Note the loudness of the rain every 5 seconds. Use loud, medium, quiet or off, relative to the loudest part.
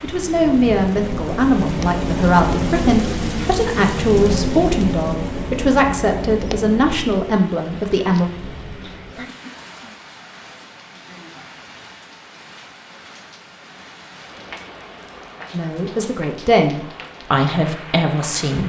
loud, medium, quiet, quiet.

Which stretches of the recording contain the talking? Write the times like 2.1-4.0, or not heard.
0.0-8.2, 15.5-18.6.